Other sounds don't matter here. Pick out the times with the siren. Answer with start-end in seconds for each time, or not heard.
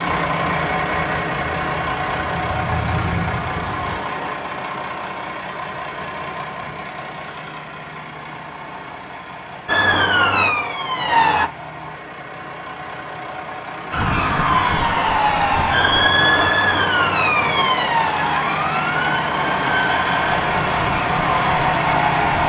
0.0-4.0, 9.7-11.5, 13.9-22.4.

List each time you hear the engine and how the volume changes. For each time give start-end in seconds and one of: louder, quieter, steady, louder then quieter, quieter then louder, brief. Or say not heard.
0.0-22.4 quieter then louder.